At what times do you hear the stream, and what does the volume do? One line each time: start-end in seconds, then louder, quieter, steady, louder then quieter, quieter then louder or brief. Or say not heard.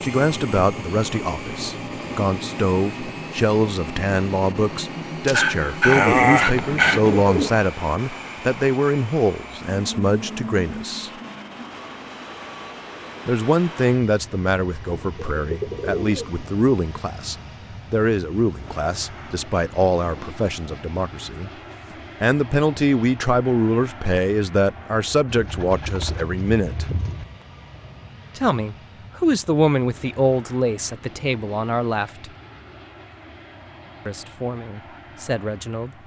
not heard.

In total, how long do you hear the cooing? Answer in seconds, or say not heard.
5 s.